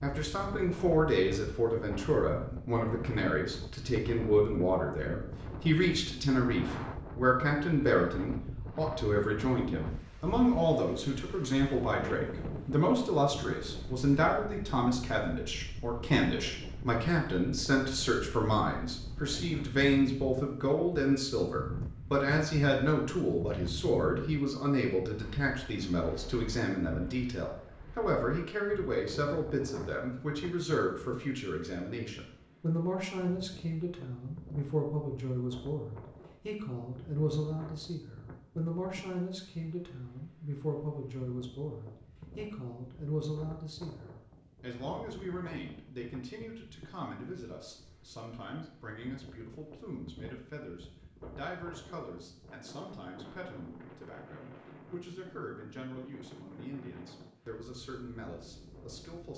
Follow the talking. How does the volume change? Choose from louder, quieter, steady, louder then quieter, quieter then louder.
quieter.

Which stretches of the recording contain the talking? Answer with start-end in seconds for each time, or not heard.
0.0-59.3.